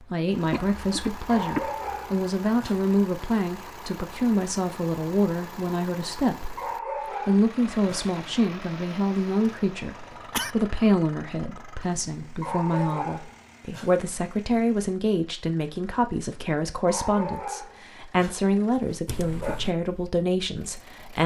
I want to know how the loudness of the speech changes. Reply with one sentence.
The volume of the speech stays about the same.